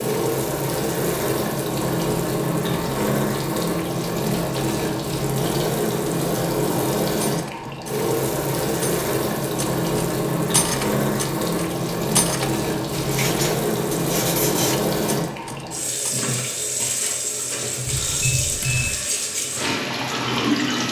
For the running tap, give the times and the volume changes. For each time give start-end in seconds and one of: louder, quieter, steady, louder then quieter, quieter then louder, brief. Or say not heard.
0.0-20.8 steady.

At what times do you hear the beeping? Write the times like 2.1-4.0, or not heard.
17.9-18.9.